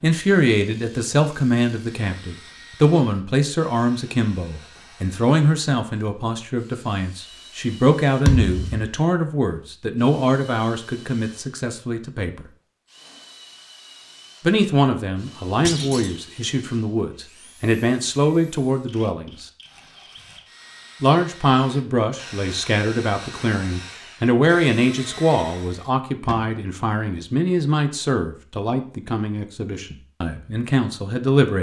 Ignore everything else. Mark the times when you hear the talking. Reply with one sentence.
The talking can be heard from 0.0 to 12.5 s, from 14.4 to 19.4 s and from 21.0 to 31.5 s.